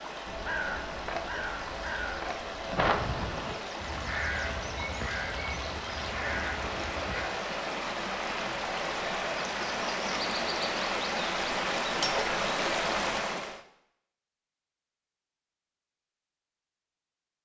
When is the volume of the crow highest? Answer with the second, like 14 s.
3 s.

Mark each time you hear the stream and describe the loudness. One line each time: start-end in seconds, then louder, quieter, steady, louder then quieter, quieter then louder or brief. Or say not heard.
0.0-13.6 louder.